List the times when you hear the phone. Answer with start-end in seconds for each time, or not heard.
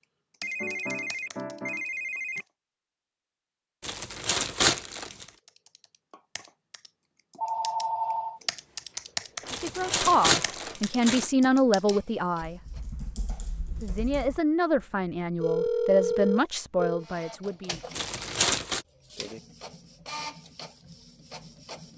0.4-2.5, 7.3-8.4, 15.4-17.1.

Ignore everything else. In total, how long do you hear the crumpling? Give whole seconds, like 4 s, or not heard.
4 s.